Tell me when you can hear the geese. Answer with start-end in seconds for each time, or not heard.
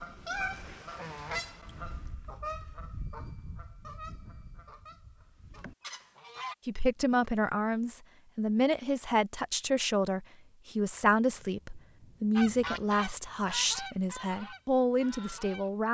0.0-6.5, 12.3-15.8.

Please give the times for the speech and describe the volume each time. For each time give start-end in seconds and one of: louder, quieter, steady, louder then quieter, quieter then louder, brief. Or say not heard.
6.7-15.9 steady.